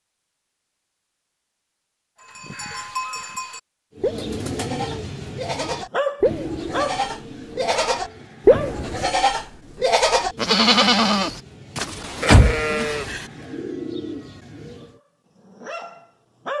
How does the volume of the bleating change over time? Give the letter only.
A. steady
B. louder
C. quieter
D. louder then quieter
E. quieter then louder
B.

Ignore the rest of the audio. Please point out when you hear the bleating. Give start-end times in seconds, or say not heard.
2.4-13.2.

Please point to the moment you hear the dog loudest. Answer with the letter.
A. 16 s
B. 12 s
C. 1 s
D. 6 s
D.